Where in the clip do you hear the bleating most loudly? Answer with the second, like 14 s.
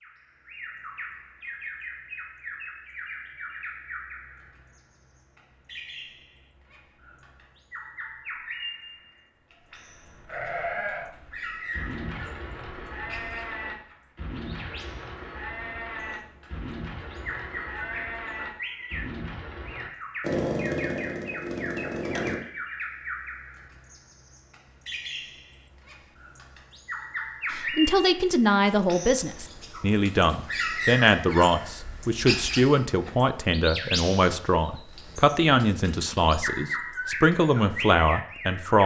11 s.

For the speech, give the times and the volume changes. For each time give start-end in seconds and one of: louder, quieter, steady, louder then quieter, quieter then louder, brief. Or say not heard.
27.5-38.8 steady.